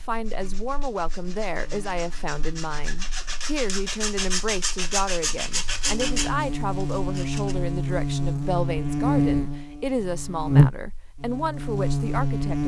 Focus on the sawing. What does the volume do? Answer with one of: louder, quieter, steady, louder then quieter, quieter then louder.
louder.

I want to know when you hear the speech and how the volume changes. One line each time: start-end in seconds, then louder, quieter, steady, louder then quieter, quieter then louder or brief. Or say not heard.
0.0-12.6 steady.